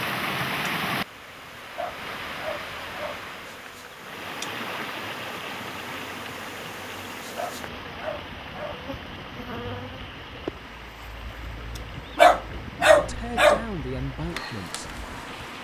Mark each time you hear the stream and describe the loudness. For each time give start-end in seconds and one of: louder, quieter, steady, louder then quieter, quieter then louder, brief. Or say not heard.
0.0-15.5 quieter.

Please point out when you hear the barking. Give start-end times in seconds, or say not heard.
1.8-3.2, 7.3-8.8, 12.2-13.7.